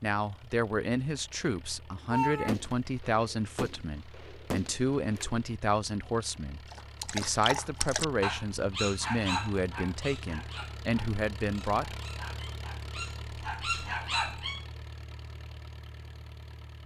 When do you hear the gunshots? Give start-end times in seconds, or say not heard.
2.1-5.4.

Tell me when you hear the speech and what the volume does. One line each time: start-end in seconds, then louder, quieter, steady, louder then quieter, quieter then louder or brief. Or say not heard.
0.0-12.0 steady.